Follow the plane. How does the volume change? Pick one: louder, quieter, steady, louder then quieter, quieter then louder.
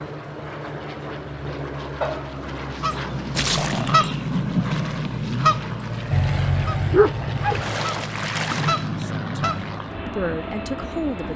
steady.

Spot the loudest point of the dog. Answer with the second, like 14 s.
7 s.